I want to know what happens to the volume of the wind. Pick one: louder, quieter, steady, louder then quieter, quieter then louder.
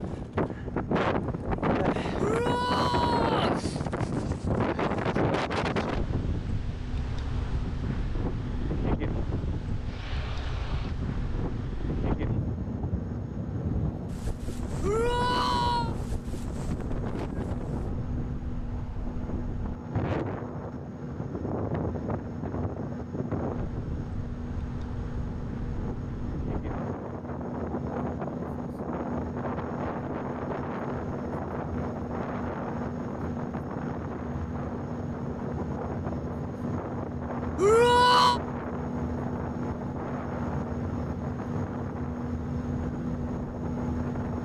quieter.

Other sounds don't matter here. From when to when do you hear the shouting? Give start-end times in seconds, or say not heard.
2.1-3.5, 14.8-15.9, 37.5-38.4.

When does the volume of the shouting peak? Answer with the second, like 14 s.
38 s.